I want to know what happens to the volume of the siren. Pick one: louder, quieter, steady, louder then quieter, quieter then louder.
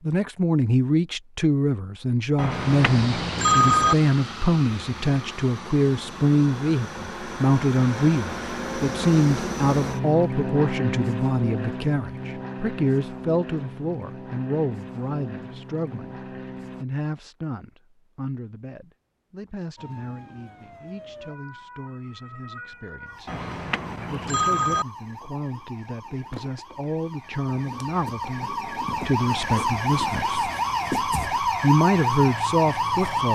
louder.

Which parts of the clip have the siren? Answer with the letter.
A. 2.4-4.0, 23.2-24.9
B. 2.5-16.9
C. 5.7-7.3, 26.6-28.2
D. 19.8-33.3
D.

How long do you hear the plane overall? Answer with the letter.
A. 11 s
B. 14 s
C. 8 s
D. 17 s
B.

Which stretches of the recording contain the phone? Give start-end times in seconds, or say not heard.
2.4-4.0, 23.2-24.9.